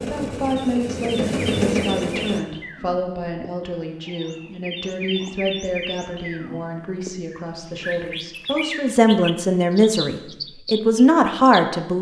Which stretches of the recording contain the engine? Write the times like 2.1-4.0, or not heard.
0.0-2.4.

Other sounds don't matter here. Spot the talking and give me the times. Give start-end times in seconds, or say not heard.
0.0-11.9.